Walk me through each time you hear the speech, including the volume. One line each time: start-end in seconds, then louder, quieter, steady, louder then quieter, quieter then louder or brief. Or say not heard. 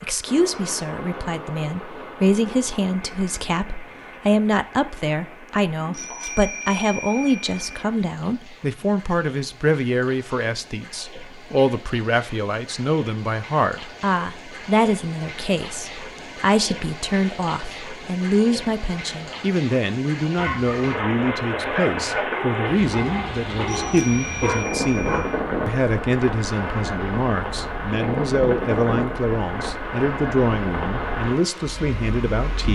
0.0-32.6 steady.